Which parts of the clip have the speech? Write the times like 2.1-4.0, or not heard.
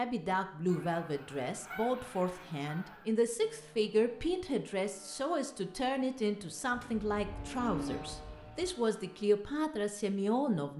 0.0-10.7.